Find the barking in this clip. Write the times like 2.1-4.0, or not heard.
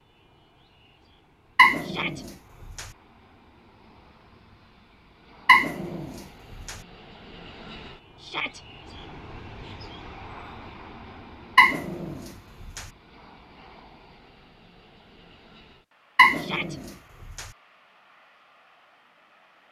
1.6-2.9, 5.5-6.8, 11.6-12.8, 16.1-17.4.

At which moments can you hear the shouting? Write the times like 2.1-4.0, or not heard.
1.8-2.2, 8.2-8.7, 16.4-16.8.